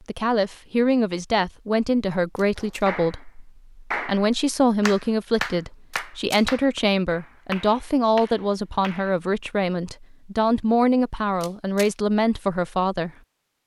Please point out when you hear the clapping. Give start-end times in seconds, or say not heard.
2.5-9.2.